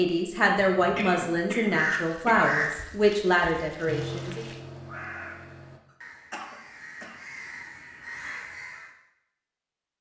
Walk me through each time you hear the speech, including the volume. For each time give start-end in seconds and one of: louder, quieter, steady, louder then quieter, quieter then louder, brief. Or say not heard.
0.0-4.5 steady.